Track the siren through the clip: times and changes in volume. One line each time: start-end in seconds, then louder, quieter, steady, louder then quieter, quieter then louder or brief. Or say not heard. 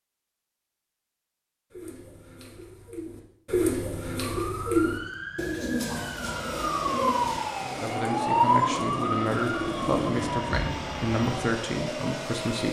4.2-12.6 louder then quieter.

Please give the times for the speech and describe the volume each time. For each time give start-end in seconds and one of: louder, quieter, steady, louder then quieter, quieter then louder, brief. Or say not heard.
7.6-12.6 steady.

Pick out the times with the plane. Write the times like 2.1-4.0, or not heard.
6.0-12.6.